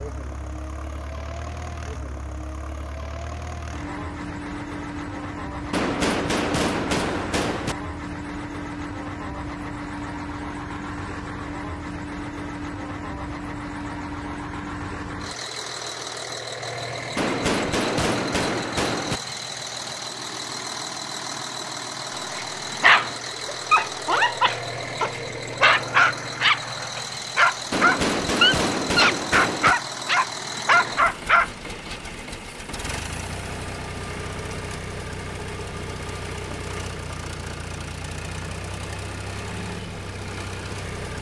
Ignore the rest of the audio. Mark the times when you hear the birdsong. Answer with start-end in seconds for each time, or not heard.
not heard.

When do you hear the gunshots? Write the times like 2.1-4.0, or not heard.
5.7-7.8, 17.1-19.2, 27.7-29.8.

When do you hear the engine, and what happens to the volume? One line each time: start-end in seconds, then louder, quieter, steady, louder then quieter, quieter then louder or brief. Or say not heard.
0.0-41.1 steady.